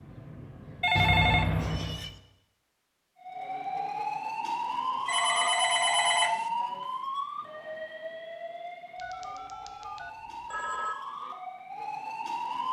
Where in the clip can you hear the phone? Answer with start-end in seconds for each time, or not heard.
0.8-2.1, 5.0-6.5, 8.9-10.9.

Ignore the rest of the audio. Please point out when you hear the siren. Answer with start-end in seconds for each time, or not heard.
3.2-12.6.